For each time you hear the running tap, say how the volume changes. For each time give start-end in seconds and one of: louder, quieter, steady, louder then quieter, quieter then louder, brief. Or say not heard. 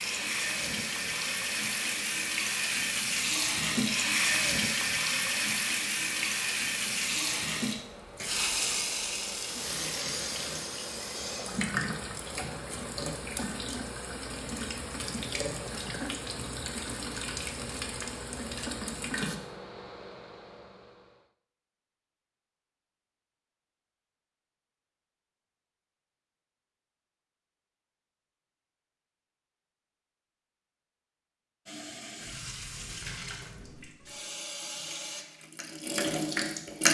0.0-19.4 quieter
31.6-36.8 louder.